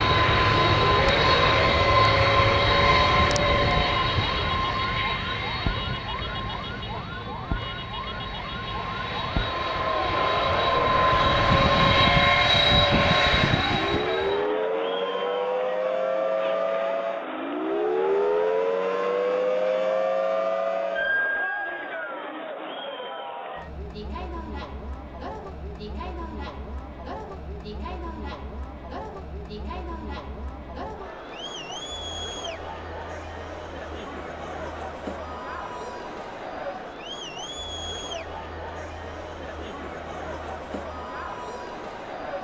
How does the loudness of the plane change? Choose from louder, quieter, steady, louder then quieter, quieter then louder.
quieter then louder.